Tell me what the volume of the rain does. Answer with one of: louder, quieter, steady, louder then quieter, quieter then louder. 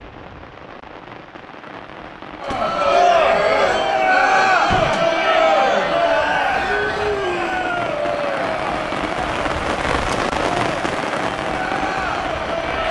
louder.